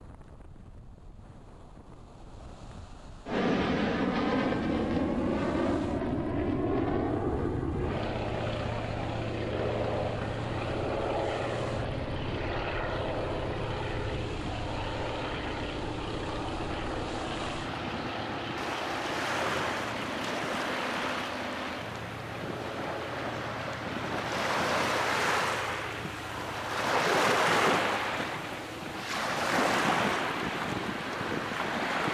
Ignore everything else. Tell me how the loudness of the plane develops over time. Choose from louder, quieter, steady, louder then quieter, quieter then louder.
quieter.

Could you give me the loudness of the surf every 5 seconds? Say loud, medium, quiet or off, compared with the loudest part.
quiet, quiet, quiet, medium, medium, loud, loud.